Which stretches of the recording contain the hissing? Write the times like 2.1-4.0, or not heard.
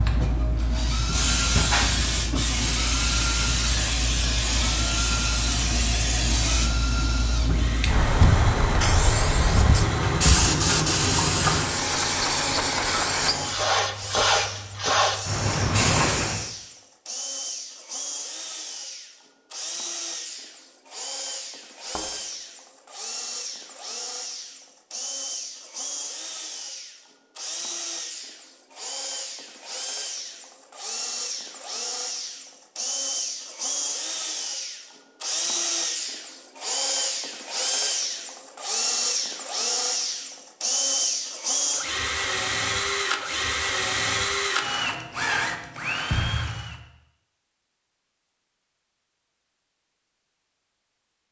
0.0-16.5.